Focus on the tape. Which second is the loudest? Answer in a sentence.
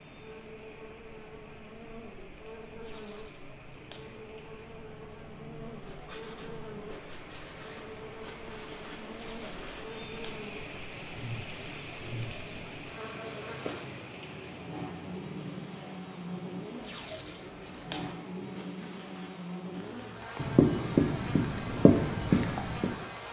The loudest moment of the tape is at 18 seconds.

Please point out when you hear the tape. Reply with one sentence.
The tape can be heard from 2.8 to 4.1 s, from 9.1 to 10.4 s and from 16.8 to 18.1 s.